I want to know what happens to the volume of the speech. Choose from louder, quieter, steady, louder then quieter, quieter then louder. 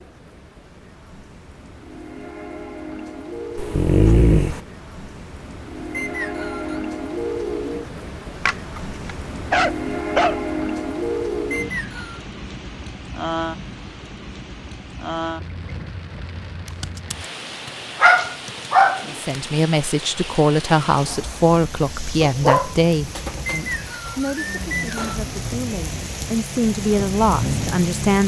quieter then louder.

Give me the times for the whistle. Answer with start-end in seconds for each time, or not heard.
5.9-6.8, 11.5-12.2, 23.4-25.2.